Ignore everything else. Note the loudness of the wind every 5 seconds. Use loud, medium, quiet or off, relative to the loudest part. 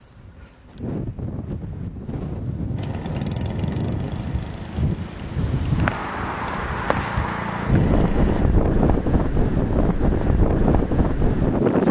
medium, loud, loud.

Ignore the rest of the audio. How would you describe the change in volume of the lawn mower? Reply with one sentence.
The volume of the lawn mower goes down, then up.